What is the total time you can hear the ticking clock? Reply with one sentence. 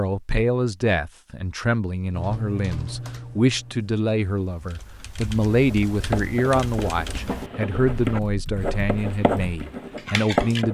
You can't hear the ticking clock here.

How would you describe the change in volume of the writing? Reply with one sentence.
The loudness of the writing goes up, then down.